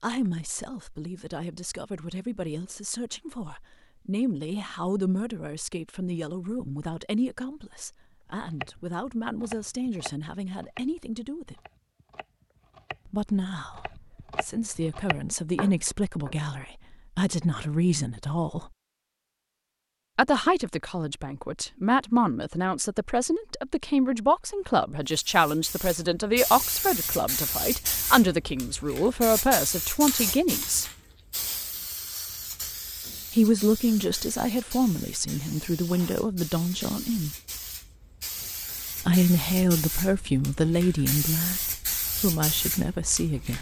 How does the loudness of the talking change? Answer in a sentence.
The loudness of the talking goes up.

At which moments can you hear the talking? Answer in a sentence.
The talking can be heard from 0.0 to 11.6 s, from 13.1 to 18.7 s, from 20.1 to 30.9 s, from 33.3 to 37.3 s and from 39.0 to 43.5 s.